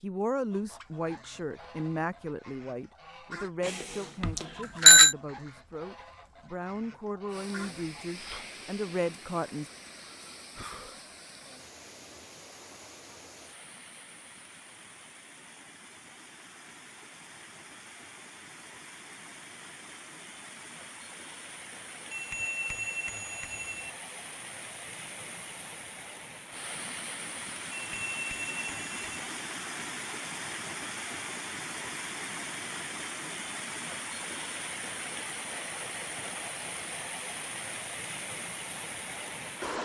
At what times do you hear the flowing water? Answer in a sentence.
You can hear the flowing water from 7.2 to 39.8 s.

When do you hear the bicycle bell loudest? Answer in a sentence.
The loudest moment of the bicycle bell is at 5 seconds.